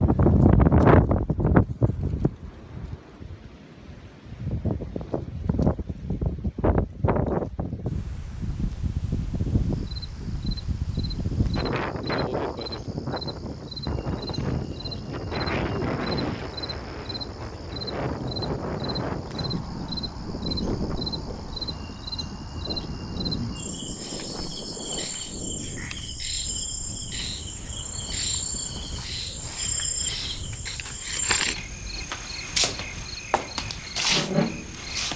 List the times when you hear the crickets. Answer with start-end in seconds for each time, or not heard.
9.7-35.1.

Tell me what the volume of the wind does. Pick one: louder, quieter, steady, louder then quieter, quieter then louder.
quieter.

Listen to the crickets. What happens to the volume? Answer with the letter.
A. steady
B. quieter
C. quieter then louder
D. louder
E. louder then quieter
D.